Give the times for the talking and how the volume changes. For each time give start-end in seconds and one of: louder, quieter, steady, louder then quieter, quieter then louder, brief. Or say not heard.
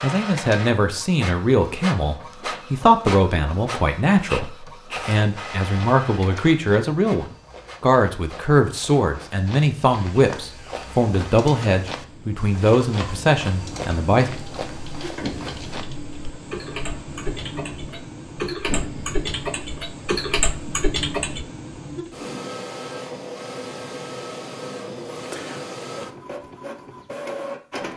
0.0-14.3 steady.